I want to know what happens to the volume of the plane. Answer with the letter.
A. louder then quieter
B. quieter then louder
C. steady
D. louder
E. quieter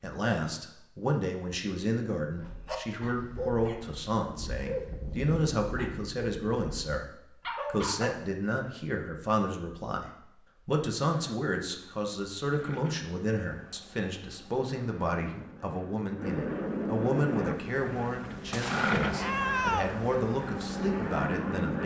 D.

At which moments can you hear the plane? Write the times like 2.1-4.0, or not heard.
11.1-21.8.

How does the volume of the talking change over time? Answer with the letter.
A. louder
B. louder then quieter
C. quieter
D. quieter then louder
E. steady
E.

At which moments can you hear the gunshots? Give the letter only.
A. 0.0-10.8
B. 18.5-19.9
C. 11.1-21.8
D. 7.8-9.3
B.